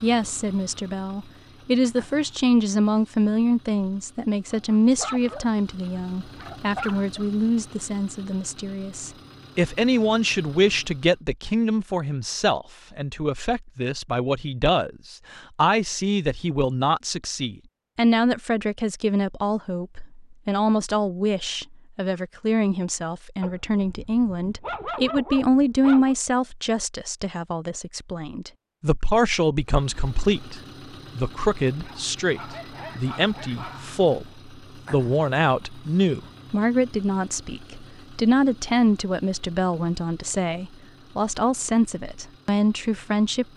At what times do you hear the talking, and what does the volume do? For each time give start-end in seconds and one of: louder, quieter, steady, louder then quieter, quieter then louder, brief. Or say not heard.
0.0-43.5 steady.